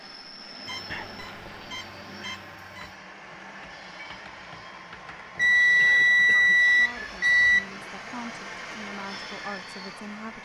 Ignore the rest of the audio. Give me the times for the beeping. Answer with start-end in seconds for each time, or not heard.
0.7-3.0, 5.3-7.7.